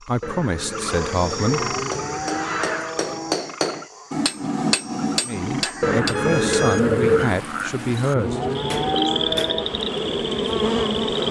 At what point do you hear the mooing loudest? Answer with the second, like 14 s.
9 s.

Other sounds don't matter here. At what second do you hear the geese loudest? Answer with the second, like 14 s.
7 s.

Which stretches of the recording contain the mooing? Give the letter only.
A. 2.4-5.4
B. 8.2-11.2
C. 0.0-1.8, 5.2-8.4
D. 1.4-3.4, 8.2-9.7
D.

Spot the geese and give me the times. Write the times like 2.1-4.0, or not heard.
0.2-3.0, 5.8-7.4.